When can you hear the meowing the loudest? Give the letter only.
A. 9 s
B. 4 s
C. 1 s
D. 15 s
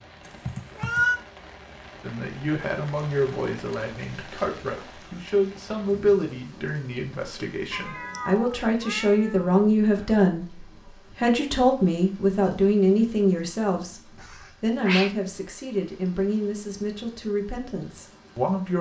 C.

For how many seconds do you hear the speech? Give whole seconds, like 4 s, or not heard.
17 s.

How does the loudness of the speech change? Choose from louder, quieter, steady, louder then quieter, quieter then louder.
louder then quieter.